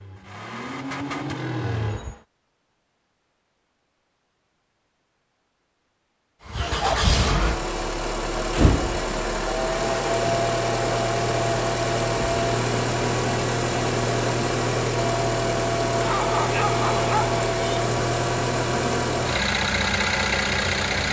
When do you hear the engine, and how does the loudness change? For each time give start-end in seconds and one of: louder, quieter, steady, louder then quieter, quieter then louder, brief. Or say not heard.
0.0-2.2 brief
6.5-21.0 steady.